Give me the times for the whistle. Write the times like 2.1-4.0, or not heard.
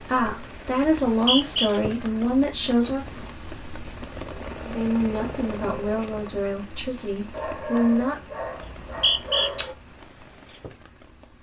1.1-1.7, 8.6-9.5.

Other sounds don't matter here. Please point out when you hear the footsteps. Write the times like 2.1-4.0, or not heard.
not heard.